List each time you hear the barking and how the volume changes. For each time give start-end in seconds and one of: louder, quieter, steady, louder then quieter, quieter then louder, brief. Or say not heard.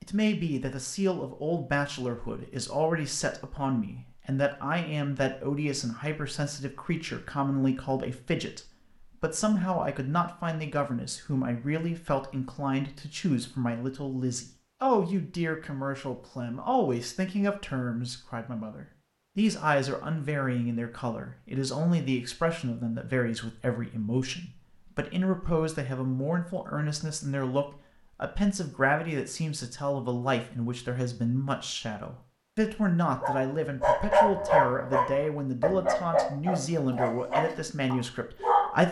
33.2-38.8 quieter.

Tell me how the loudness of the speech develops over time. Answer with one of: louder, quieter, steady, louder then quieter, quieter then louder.
steady.